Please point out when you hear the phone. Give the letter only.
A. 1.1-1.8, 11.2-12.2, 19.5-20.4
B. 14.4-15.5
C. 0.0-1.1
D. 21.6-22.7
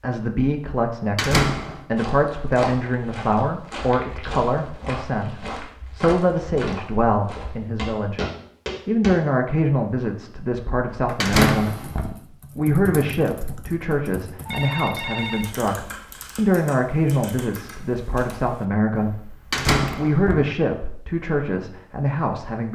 B.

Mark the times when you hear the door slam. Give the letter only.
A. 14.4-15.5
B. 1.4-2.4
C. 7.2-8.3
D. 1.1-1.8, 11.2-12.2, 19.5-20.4
D.